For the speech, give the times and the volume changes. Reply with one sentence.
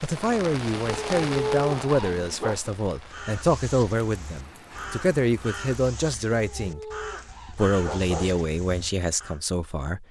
The speech can be heard from 0.0 to 6.8 s, at a steady volume; and briefly from 7.5 to 10.0 s.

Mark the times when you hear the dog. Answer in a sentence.
You can hear the dog from 0.8 to 2.5 s and from 6.3 to 8.3 s.